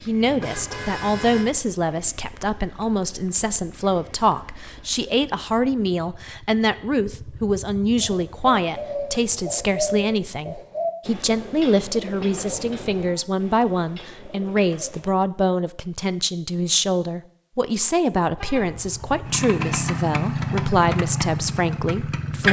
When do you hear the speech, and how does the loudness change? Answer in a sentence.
You can hear the speech from 0.0 to 22.4 s, at a steady volume.